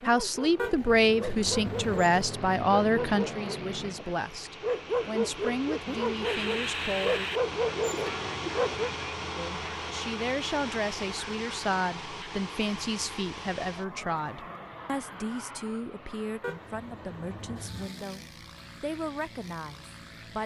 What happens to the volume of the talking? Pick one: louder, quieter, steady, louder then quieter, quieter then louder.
quieter.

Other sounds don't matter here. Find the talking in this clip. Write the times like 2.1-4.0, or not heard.
0.1-7.2, 9.3-20.4.